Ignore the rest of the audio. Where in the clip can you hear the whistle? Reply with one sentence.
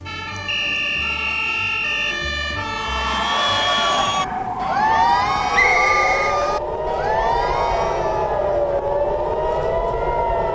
You can hear the whistle from 0.5 to 2.1 s and from 5.5 to 6.3 s.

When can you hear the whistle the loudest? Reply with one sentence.
The loudest moment of the whistle is at 6 seconds.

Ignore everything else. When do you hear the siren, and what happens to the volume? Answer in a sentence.
You can hear the siren from 0.0 to 10.5 s, getting louder.